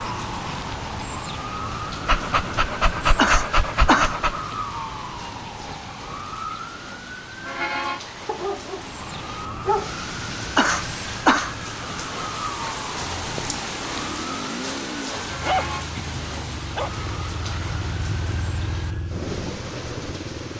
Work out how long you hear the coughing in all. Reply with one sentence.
The coughing can be heard for 2 seconds in total.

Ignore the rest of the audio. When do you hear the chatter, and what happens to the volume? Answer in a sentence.
You can't hear the chatter here.